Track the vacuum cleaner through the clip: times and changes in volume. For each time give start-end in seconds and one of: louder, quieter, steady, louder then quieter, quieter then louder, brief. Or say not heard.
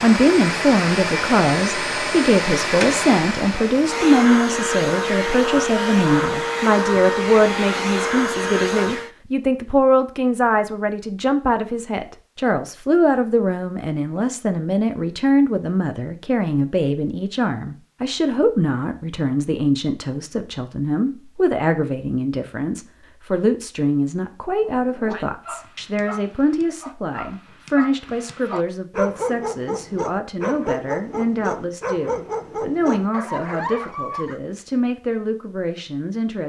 0.0-9.1 steady.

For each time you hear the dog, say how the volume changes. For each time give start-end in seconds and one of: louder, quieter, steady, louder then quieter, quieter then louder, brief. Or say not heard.
24.6-34.4 louder.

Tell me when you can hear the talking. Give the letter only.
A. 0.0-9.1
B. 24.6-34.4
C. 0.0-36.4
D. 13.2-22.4
C.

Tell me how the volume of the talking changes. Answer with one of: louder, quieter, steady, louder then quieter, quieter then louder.
quieter.